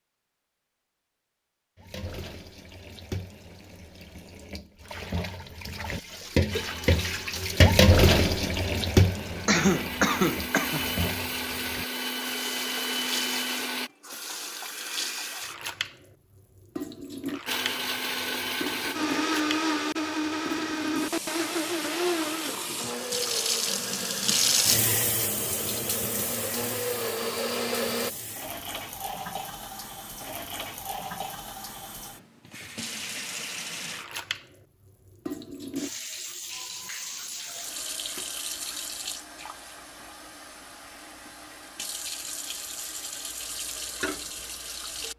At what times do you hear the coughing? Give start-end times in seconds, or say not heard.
9.4-10.8.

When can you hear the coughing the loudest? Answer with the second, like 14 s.
10 s.